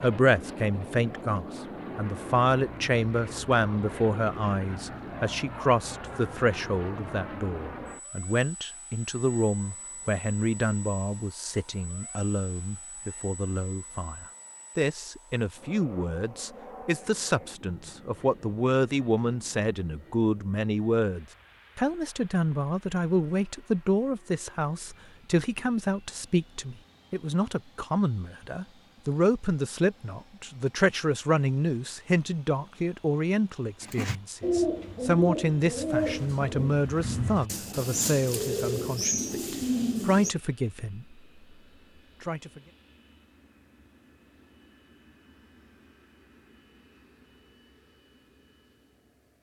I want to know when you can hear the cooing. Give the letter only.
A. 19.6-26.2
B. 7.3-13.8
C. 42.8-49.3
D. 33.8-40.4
D.